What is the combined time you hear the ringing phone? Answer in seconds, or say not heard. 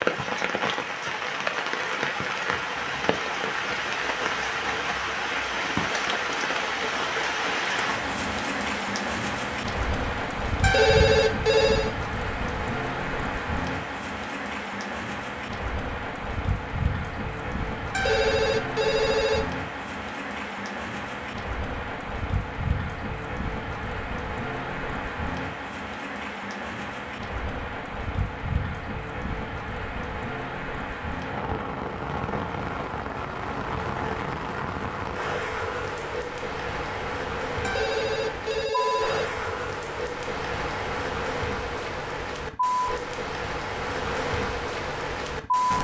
5 s.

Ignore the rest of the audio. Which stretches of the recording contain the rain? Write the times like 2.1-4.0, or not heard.
0.0-45.7.